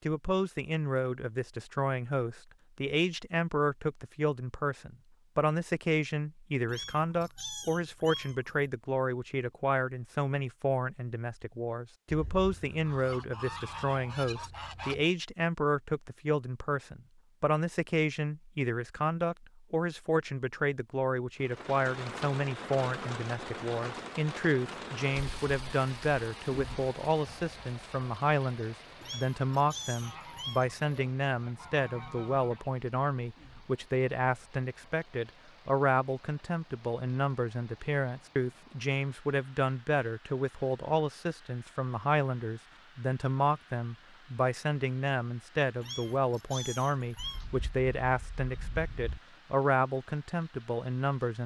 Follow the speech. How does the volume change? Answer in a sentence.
The volume of the speech stays about the same.